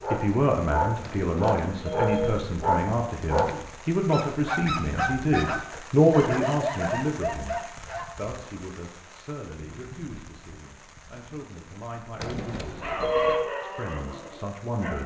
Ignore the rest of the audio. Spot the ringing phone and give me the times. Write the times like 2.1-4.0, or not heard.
1.0-2.5, 12.2-13.4.